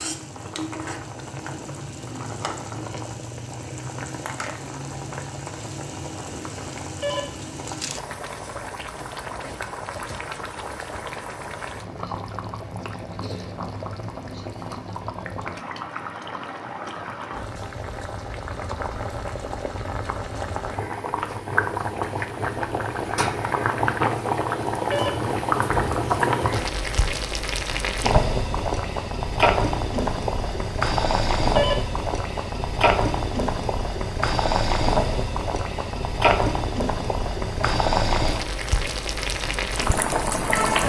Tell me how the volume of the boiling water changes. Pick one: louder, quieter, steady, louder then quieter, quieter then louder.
louder.